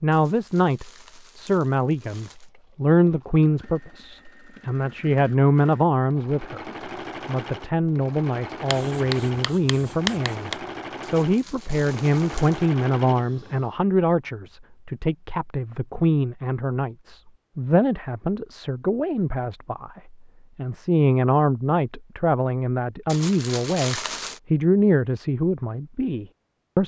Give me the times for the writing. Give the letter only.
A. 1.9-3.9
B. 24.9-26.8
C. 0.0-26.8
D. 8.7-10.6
D.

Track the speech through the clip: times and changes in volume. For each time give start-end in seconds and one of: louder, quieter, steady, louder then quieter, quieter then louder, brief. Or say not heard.
0.0-26.8 steady.